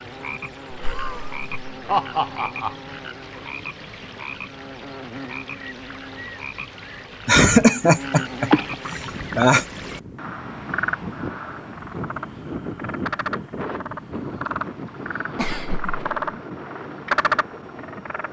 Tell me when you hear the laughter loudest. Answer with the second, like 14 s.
8 s.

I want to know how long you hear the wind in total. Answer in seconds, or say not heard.
9 s.